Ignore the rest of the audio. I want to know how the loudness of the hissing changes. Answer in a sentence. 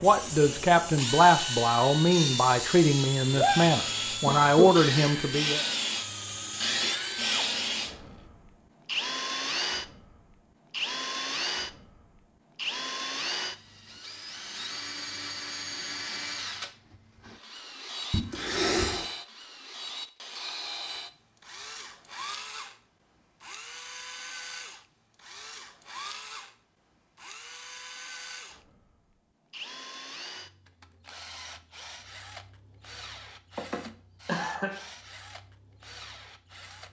The loudness of the hissing goes up.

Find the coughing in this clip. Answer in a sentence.
You can hear the coughing from 4.2 to 4.7 s, from 18.1 to 19.1 s and from 33.5 to 34.8 s.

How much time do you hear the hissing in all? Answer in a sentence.
You can hear the hissing for 8 seconds altogether.